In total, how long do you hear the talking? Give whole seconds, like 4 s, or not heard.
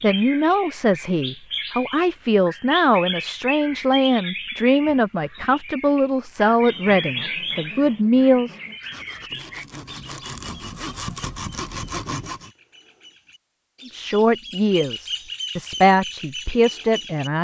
12 s.